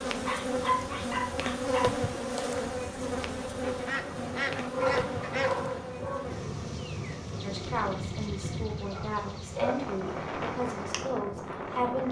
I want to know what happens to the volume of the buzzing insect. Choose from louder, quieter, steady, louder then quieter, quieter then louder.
quieter.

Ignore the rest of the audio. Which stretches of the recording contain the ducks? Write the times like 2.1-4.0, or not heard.
3.6-5.6.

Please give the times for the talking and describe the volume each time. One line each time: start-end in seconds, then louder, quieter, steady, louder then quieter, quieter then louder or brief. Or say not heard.
7.4-12.0 steady.